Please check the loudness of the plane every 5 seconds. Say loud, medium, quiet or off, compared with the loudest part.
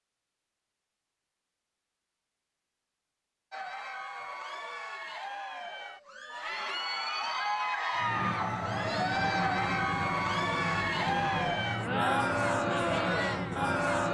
off, loud, loud.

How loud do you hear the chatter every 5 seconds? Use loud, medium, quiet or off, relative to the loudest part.
medium, loud, loud.